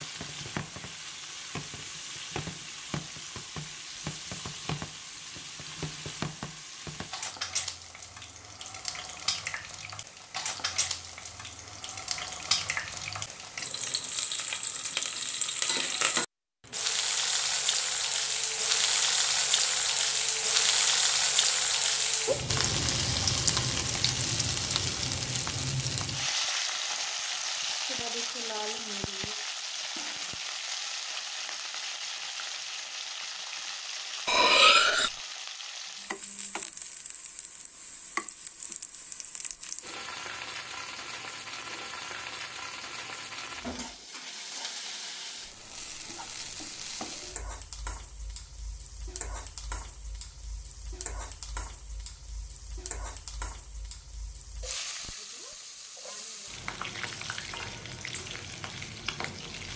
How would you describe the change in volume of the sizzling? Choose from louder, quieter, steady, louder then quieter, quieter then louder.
louder then quieter.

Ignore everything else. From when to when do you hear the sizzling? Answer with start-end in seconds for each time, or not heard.
0.0-59.7.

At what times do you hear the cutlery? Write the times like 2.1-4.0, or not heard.
34.2-35.1.